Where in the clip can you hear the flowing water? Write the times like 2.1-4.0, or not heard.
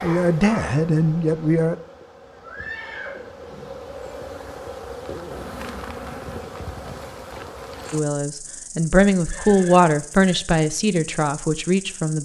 not heard.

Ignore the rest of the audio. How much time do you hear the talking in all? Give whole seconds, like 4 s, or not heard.
6 s.